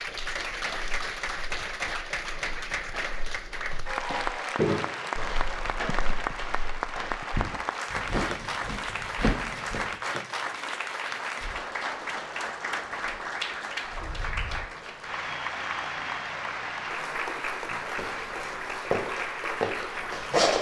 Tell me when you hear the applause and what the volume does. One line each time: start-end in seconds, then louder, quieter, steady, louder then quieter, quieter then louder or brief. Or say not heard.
0.0-20.5 steady.